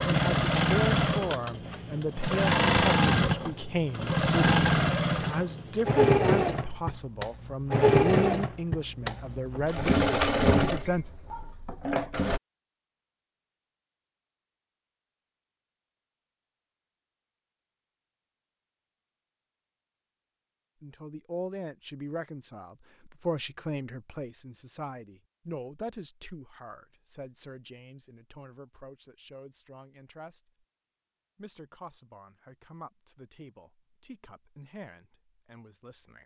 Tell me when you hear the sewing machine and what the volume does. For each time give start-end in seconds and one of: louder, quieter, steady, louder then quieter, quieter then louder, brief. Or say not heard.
0.0-12.4 steady.